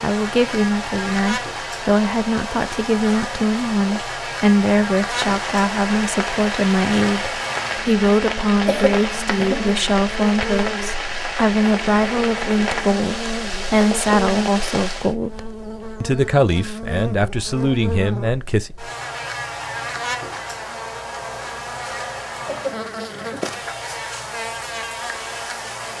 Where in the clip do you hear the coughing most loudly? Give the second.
9 s.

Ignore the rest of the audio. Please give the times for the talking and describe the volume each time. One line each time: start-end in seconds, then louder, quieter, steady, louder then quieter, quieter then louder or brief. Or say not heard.
0.0-18.7 steady.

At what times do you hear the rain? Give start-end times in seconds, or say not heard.
0.0-15.2.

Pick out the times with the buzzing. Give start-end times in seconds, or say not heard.
0.0-25.9.